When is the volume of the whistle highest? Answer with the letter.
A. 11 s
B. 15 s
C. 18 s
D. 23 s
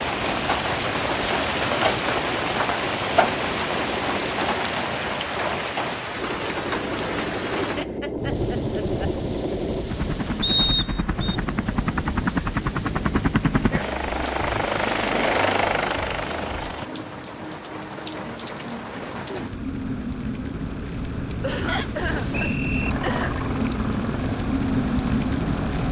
A.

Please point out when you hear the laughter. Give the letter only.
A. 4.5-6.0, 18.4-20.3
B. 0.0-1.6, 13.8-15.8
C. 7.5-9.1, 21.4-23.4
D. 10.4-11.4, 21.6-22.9
C.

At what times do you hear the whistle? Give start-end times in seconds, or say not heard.
10.4-11.4, 21.6-22.9.